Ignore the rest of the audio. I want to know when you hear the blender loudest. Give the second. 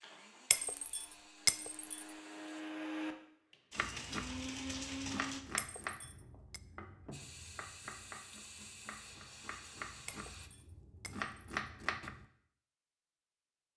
5 s.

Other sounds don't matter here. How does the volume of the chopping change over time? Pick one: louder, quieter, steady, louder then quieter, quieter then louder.
quieter then louder.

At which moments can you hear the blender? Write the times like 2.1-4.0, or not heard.
0.0-5.4.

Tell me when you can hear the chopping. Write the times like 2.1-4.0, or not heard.
3.8-12.2.